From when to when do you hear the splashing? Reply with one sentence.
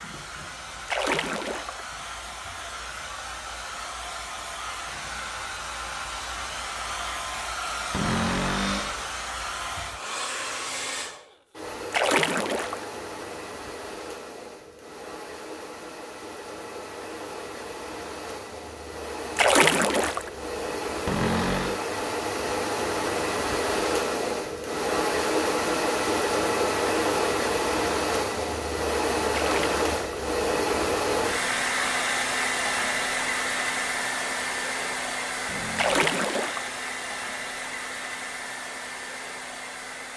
The splashing can be heard from 0.8 to 1.8 s, from 11.9 to 12.8 s, from 19.4 to 20.3 s, from 29.3 to 30.0 s and from 35.8 to 36.7 s.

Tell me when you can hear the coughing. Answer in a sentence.
The coughing can't be heard in this clip.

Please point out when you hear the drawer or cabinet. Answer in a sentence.
You can hear the drawer or cabinet from 7.9 to 9.1 s, from 21.1 to 21.8 s and from 35.5 to 36.1 s.